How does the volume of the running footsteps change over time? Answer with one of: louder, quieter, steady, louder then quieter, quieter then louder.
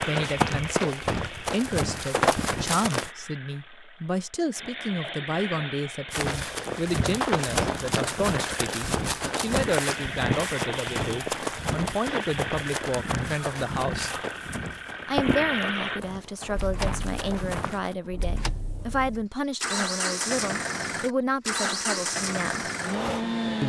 quieter.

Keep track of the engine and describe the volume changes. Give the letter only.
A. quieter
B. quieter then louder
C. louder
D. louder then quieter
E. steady
C.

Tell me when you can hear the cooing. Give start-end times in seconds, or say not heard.
not heard.